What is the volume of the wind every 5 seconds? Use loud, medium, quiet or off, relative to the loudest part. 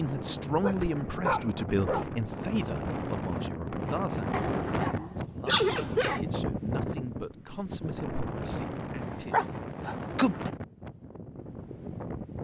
loud, loud, medium.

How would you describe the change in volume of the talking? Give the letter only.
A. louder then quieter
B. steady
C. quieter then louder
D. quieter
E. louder
D.